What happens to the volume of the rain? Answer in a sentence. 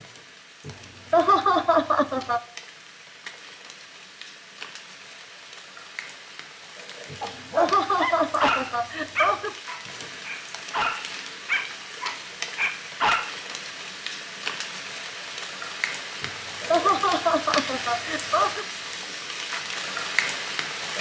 The loudness of the rain goes up.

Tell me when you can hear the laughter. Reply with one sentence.
You can hear the laughter from 0.7 to 2.4 s, from 7.1 to 9.6 s and from 16.2 to 18.6 s.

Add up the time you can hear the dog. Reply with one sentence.
You can hear the dog for 6 seconds altogether.